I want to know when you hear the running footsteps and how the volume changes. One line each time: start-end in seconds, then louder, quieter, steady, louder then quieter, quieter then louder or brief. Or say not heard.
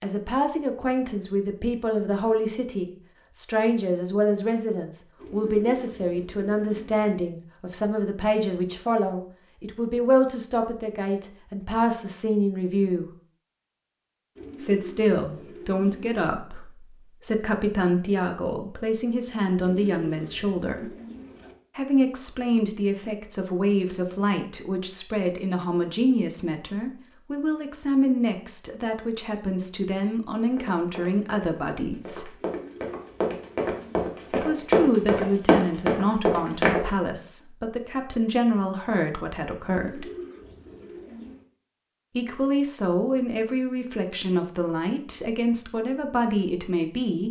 30.4-36.9 louder.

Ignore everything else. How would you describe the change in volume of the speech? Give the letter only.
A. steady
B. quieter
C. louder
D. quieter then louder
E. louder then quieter
A.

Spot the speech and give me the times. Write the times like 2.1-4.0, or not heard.
0.0-13.1, 14.6-20.9, 21.8-32.4, 34.3-40.0, 42.1-47.2.